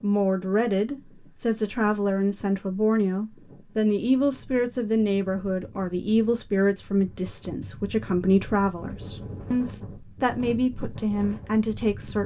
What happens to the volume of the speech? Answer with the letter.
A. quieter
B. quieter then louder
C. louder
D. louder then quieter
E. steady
E.